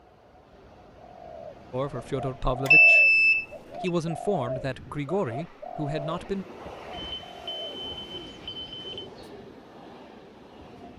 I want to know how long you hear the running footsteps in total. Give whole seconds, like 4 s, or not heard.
not heard.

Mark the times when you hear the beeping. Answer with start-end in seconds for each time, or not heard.
2.6-3.9, 6.9-9.1.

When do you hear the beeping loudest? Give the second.
3 s.